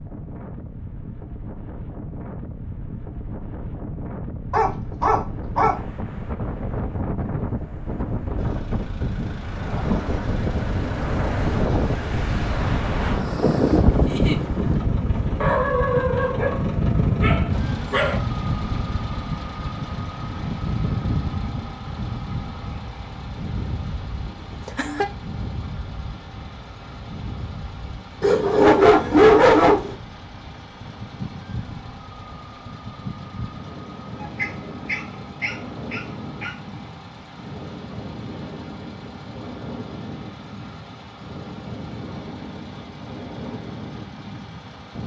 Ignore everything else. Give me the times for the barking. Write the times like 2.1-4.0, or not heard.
4.5-5.8, 15.4-16.6, 17.2-18.2, 28.2-29.9, 34.2-36.5.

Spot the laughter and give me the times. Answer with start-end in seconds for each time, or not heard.
14.0-14.4, 24.2-25.1.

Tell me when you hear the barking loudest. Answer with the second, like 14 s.
29 s.